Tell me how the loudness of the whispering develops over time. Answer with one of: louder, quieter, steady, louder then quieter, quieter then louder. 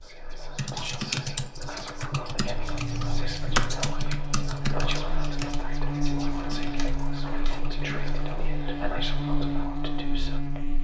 steady.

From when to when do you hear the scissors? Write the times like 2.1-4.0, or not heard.
2.5-3.8, 6.5-7.6.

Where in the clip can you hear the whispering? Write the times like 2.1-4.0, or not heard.
0.0-10.7.